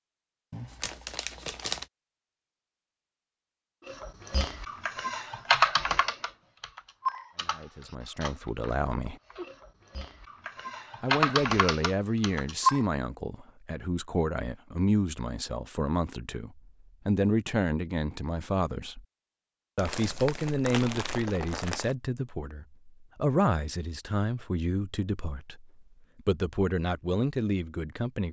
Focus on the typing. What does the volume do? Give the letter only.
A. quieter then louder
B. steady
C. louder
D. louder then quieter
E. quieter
A.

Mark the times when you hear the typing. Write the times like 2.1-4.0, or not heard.
3.9-12.8.